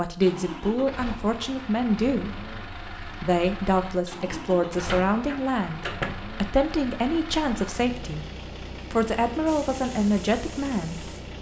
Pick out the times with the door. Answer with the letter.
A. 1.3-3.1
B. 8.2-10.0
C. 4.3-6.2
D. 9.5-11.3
C.